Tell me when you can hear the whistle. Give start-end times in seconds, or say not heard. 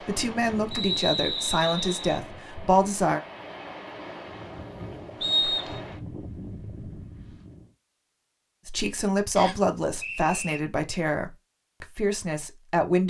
0.7-2.2, 5.2-5.8, 9.3-10.6.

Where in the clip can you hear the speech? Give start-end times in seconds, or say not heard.
0.0-3.2, 8.7-13.0.